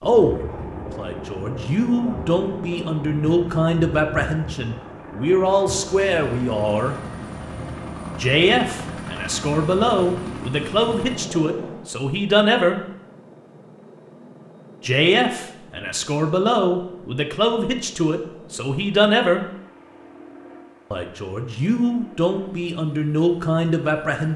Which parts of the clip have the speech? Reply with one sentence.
The speech can be heard from 0.0 to 7.0 s, from 8.2 to 12.8 s, from 14.8 to 19.4 s and from 20.9 to 24.3 s.